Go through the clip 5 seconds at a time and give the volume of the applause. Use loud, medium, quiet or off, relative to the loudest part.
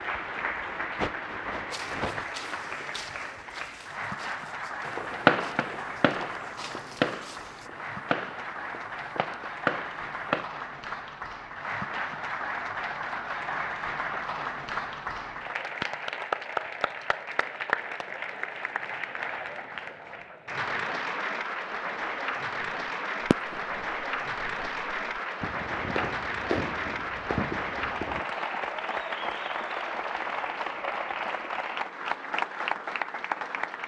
loud, medium, loud, loud, loud, loud, loud.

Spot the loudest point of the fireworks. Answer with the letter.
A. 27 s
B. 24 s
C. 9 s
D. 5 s
D.